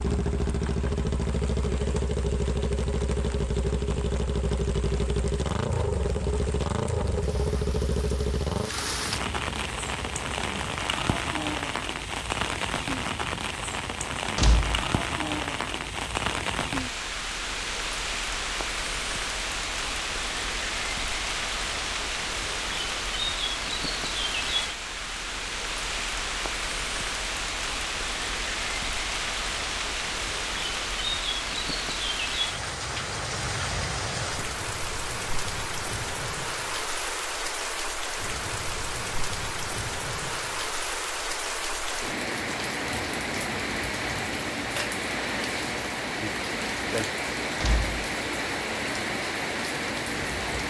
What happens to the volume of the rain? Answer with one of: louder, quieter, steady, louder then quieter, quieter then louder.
louder.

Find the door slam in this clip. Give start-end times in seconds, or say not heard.
14.3-14.8, 47.6-48.0.